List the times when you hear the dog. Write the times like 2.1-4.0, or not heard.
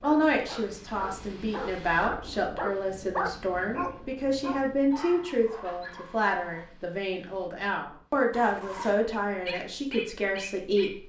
0.0-6.7, 8.3-10.9.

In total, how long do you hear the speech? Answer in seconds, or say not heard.
11 s.